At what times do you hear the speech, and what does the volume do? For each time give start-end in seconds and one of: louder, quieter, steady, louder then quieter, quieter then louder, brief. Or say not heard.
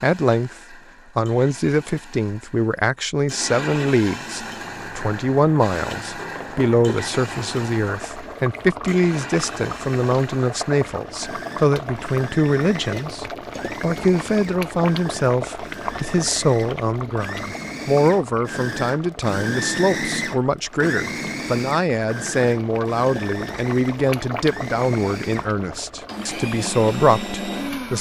0.0-27.9 steady.